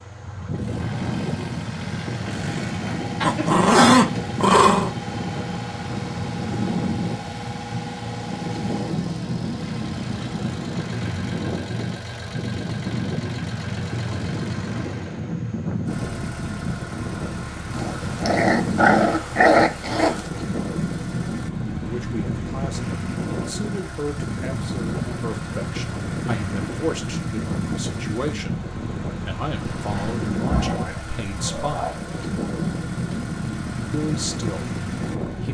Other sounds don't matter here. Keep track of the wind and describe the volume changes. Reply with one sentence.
The volume of the wind stays about the same.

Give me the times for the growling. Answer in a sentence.
The growling can be heard from 3.2 to 5.0 s, from 17.7 to 20.2 s and from 29.8 to 31.9 s.